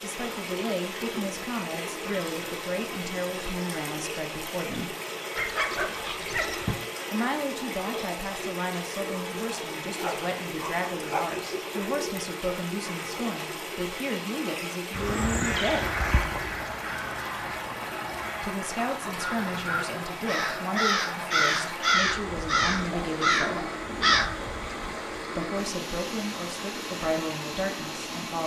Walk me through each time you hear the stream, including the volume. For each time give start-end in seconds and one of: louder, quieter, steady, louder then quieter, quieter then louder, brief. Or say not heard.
0.0-28.4 steady.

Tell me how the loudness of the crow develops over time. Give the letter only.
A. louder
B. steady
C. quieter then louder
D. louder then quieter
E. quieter
C.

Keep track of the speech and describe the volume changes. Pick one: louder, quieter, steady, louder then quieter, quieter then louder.
steady.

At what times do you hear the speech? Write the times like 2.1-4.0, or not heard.
0.0-5.0, 7.1-15.9, 18.4-23.7, 25.4-28.4.